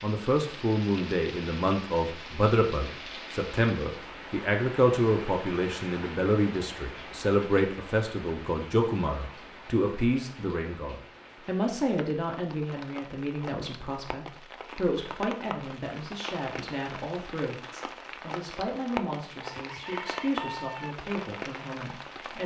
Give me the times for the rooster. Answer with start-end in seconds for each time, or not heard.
19.6-20.9.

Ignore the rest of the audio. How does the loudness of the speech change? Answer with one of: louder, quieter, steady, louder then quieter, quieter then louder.
quieter.